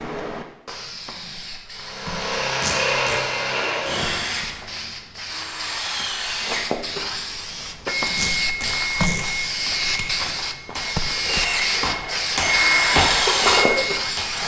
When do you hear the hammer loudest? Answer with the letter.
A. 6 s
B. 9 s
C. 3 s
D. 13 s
D.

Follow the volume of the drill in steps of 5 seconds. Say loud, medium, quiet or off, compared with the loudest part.
loud, medium, loud.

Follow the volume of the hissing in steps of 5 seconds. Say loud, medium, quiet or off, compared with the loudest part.
medium, loud, loud.